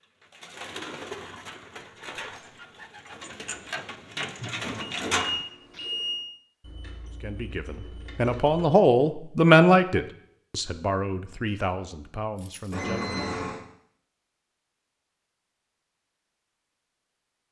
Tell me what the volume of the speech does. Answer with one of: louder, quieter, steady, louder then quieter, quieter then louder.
louder then quieter.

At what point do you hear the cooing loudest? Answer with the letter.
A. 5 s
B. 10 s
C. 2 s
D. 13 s
A.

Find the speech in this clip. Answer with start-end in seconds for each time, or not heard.
7.2-13.2.